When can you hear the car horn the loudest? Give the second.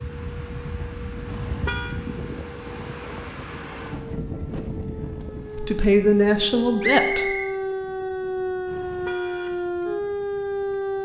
2 s.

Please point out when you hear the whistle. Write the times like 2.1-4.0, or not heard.
6.8-7.5.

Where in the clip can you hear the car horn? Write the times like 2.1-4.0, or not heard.
1.2-2.0, 8.7-9.6.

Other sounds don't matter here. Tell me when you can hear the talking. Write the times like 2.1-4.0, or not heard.
5.5-7.3.